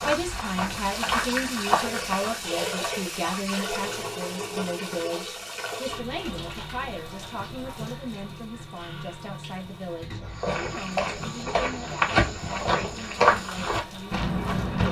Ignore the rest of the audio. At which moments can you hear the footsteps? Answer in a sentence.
You can hear the footsteps from 0.0 to 3.5 s and from 10.3 to 14.8 s.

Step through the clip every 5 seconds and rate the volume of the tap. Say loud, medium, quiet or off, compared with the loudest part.
loud, medium, medium.